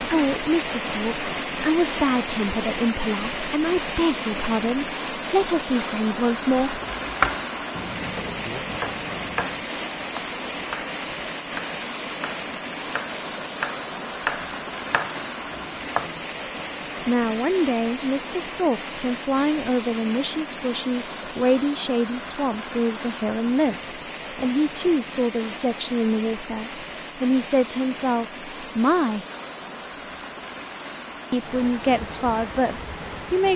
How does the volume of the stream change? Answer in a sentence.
The volume of the stream goes down.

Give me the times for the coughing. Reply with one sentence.
You can't hear the coughing here.